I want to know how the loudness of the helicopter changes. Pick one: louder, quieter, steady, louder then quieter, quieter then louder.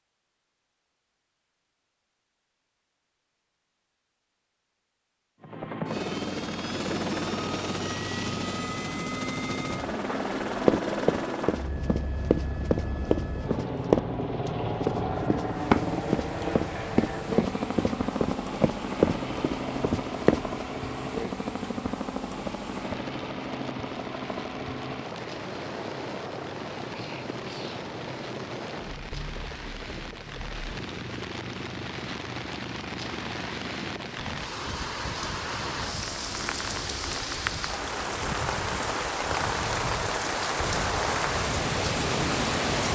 quieter.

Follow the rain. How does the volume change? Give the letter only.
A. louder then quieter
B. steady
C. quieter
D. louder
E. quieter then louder
D.